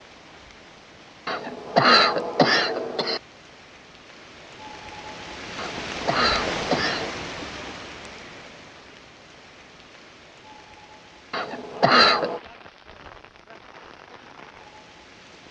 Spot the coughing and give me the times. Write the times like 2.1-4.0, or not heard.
1.2-3.2, 5.5-7.1, 11.3-12.4.